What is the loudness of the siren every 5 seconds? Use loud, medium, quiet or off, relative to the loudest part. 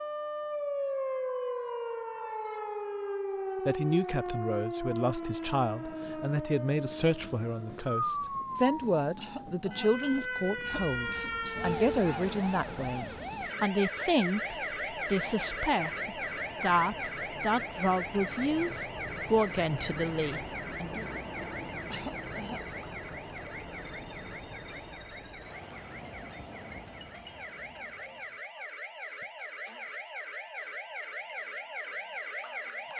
loud, loud, loud, loud, medium, medium, medium.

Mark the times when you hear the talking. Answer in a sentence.
You can hear the talking from 3.6 to 21.1 s.